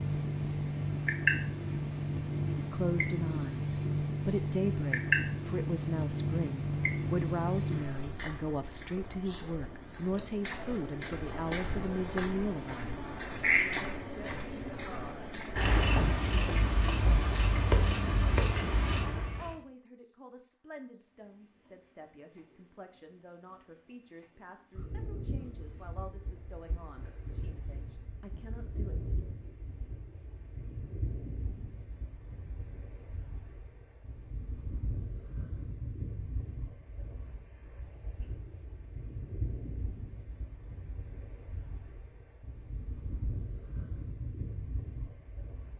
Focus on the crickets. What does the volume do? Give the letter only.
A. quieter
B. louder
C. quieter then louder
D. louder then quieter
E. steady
A.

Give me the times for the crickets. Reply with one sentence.
You can hear the crickets from 0.0 to 45.7 s.